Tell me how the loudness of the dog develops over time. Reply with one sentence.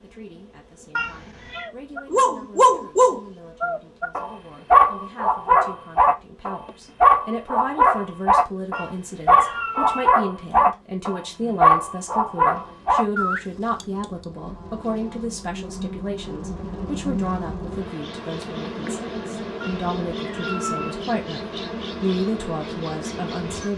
The volume of the dog stays about the same.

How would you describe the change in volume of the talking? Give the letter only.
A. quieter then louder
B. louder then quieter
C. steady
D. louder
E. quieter
D.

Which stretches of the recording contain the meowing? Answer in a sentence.
The meowing can be heard from 0.9 to 1.7 s, from 8.7 to 10.2 s and from 19.6 to 21.1 s.